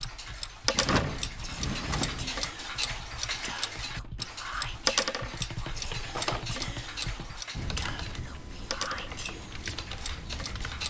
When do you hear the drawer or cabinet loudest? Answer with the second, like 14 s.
1 s.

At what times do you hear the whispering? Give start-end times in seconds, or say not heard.
1.4-9.8.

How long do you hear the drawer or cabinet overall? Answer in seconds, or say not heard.
2 s.